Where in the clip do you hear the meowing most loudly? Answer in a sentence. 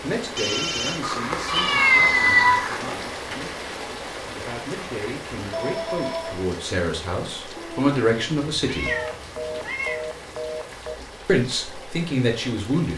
The volume of the meowing peaks at 2 seconds.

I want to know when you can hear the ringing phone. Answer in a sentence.
The ringing phone can be heard from 0.3 to 1.1 s, from 5.5 to 6.5 s and from 8.8 to 11.0 s.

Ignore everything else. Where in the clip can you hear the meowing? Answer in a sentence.
You can hear the meowing from 1.0 to 2.8 s and from 7.5 to 10.1 s.